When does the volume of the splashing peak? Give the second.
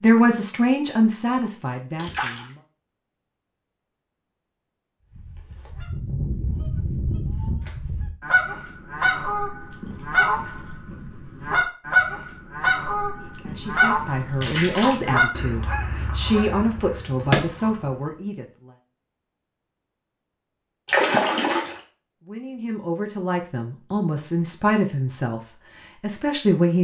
21 s.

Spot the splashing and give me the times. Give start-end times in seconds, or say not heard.
1.9-2.5, 14.4-14.9, 20.9-21.8.